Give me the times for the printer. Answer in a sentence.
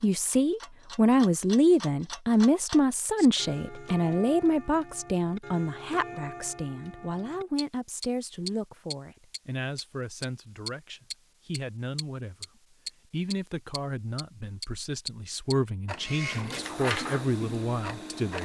You can hear the printer from 15.9 to 18.3 s.